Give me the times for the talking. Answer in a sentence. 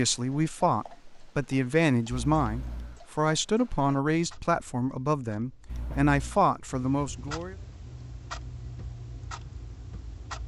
The talking can be heard from 0.0 to 7.5 s.